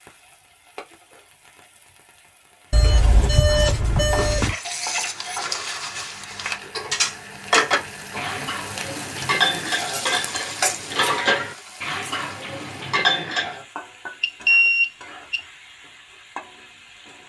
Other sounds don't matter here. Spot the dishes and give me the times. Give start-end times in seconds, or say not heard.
4.1-13.7.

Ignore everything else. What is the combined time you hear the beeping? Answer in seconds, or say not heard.
3 s.